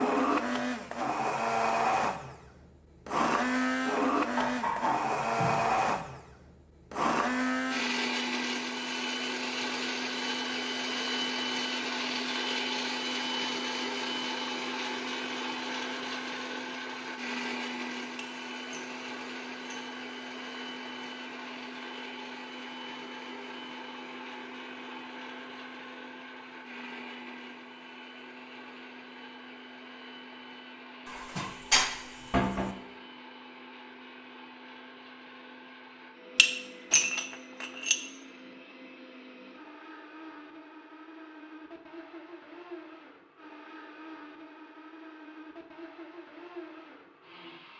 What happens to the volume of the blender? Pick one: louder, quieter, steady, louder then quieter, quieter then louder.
quieter.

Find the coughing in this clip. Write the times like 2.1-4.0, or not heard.
not heard.